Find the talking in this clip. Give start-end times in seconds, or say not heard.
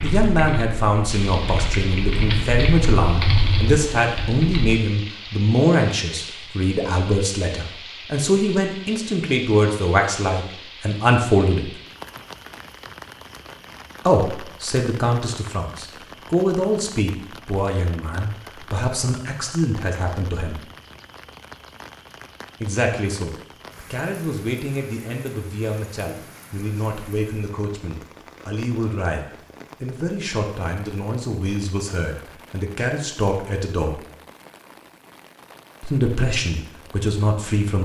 0.0-11.8, 14.1-20.6, 22.6-34.0, 35.8-37.7.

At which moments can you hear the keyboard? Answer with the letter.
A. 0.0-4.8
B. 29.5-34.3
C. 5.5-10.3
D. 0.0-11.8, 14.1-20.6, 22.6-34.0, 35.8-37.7
A.